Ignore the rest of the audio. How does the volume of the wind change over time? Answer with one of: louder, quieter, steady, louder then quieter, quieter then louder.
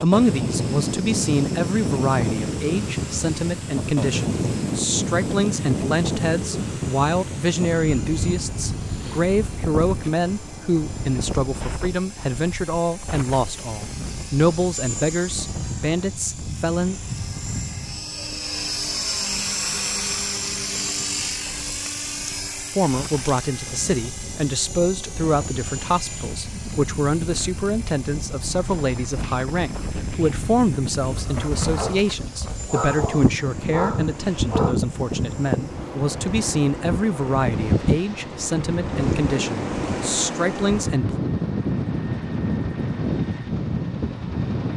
quieter then louder.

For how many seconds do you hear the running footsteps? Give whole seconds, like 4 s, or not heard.
not heard.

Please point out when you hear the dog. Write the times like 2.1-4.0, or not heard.
31.8-34.8.